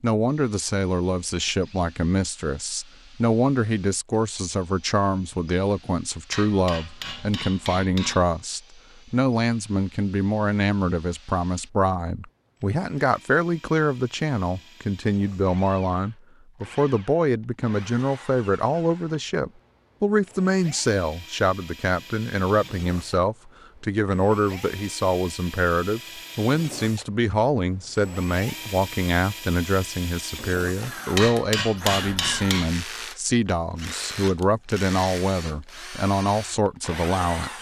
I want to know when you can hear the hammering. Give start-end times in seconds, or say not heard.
6.3-8.2, 31.1-32.8.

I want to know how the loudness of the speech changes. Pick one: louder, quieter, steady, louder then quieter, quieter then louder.
steady.